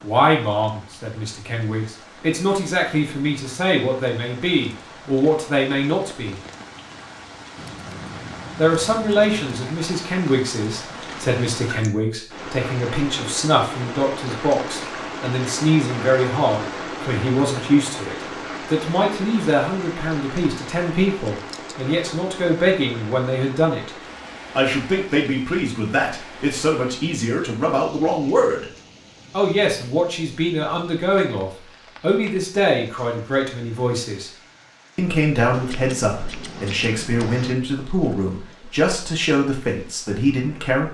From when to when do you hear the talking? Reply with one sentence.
The talking can be heard from 0.0 to 6.4 s, from 8.6 to 23.9 s, from 24.6 to 28.6 s, from 29.3 to 34.3 s and from 35.0 to 40.8 s.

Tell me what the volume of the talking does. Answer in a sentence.
The loudness of the talking stays about the same.